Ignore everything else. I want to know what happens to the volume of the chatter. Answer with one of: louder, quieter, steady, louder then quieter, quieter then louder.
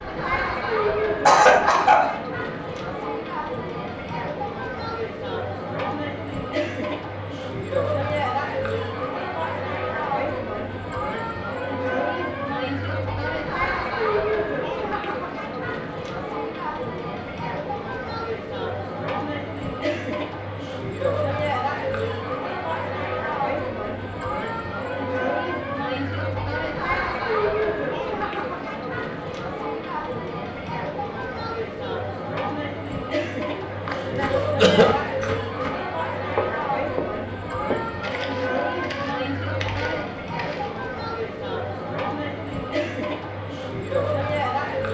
steady.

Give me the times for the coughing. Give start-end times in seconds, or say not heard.
1.2-2.1, 33.5-35.2.